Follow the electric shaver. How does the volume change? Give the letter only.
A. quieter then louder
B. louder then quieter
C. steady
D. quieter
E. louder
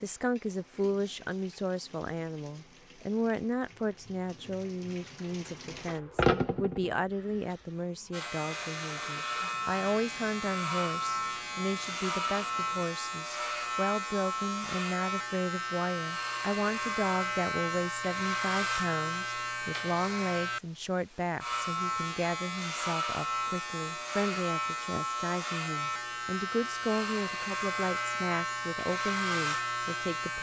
C.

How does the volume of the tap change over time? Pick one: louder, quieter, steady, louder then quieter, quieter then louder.
louder then quieter.